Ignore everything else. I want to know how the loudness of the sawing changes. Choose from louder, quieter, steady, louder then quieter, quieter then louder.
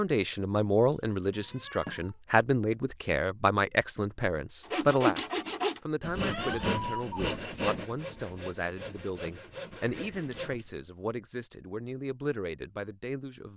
quieter.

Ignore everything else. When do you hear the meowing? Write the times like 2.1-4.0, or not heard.
0.9-2.1, 6.2-7.2, 9.8-10.6.